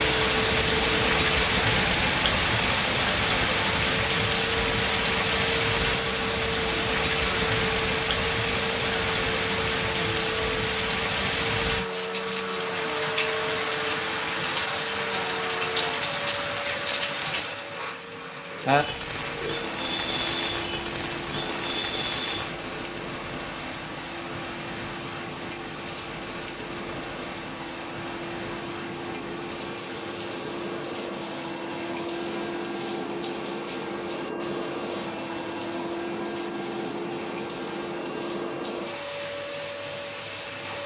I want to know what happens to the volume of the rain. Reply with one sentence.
The volume of the rain goes down.